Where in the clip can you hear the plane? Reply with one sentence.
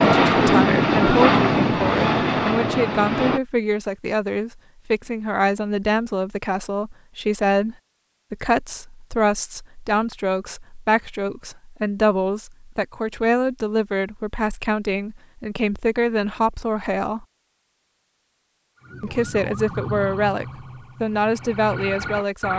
You can hear the plane from 0.0 to 3.4 s.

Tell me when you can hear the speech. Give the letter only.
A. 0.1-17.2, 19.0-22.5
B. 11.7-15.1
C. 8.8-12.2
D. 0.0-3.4
A.